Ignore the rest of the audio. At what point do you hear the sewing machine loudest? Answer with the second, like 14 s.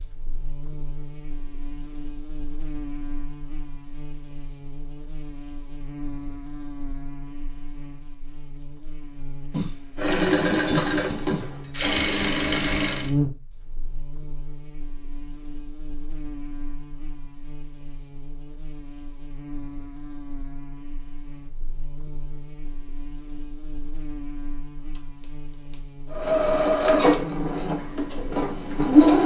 29 s.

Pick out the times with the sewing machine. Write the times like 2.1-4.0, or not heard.
9.9-13.1, 26.1-29.2.